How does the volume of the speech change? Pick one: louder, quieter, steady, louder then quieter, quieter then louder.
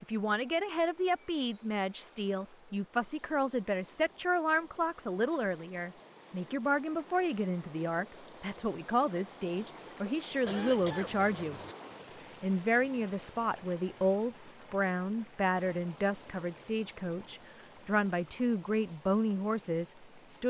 steady.